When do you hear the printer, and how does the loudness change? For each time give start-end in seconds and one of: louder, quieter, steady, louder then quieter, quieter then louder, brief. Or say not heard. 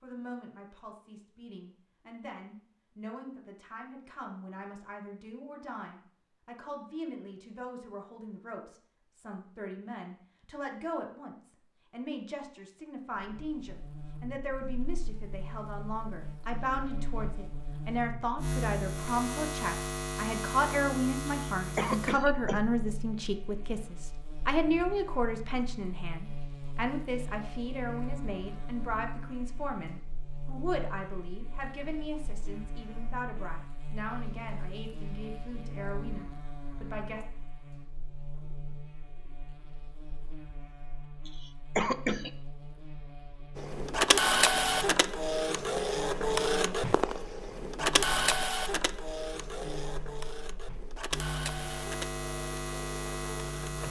43.5-53.8 quieter.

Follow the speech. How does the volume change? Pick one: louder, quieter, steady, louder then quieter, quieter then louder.
louder then quieter.